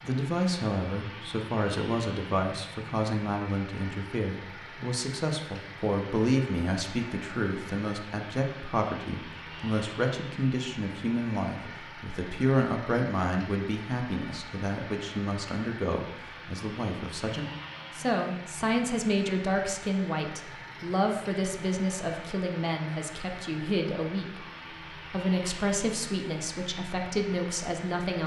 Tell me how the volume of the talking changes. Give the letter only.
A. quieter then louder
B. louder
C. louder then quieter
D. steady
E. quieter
D.